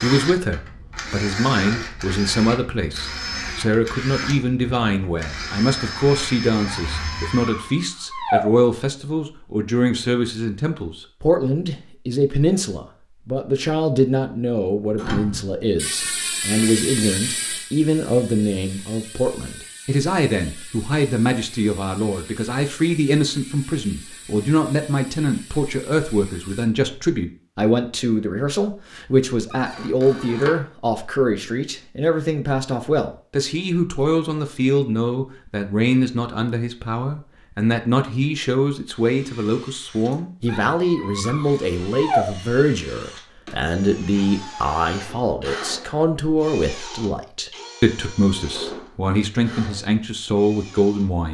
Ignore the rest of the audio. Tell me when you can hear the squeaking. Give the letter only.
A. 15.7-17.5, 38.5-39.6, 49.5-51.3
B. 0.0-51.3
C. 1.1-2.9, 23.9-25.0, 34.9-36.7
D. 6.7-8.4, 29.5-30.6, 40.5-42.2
D.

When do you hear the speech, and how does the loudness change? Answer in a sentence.
You can hear the speech from 0.0 to 51.3 s, at a steady volume.